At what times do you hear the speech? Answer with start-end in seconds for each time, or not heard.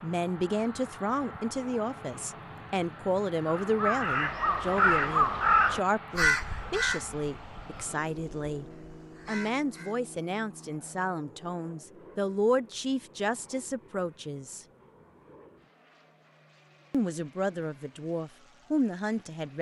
0.0-8.7, 9.2-14.7, 16.9-19.5.